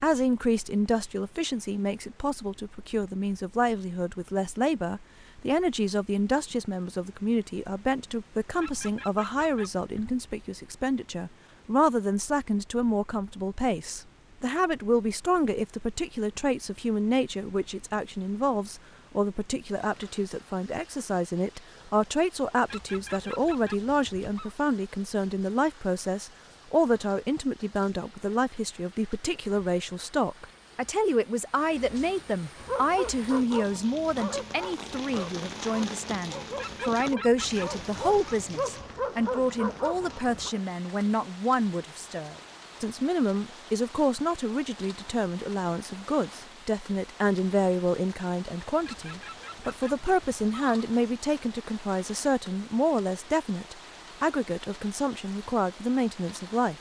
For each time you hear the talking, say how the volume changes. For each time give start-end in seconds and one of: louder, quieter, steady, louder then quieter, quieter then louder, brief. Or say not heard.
0.0-56.7 steady.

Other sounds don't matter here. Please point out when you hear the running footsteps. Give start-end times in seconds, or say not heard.
not heard.